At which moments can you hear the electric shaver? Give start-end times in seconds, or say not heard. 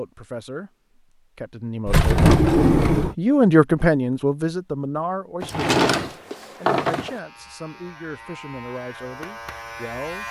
7.0-10.2.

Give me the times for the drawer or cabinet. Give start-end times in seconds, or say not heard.
1.9-3.1, 5.4-7.2.